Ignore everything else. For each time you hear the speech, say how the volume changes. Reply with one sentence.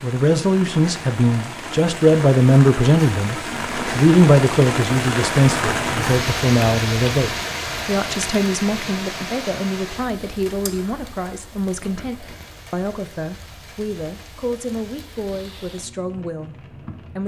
The speech can be heard from 0.0 to 17.2 s, getting quieter.